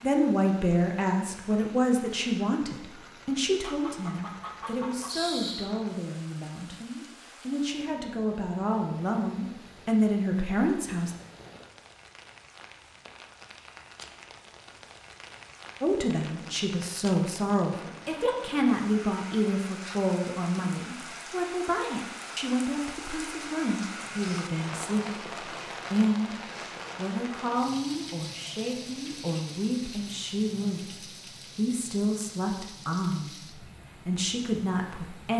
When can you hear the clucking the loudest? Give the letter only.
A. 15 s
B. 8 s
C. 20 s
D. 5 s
D.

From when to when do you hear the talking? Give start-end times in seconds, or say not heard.
0.0-11.1, 15.8-26.4, 26.9-35.3.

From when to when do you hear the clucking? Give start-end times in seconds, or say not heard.
3.6-5.7.